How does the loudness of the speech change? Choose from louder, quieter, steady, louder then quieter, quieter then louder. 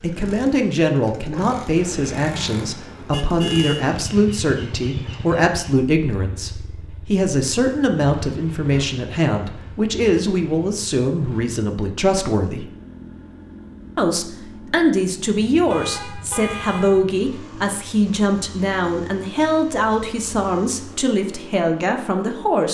steady.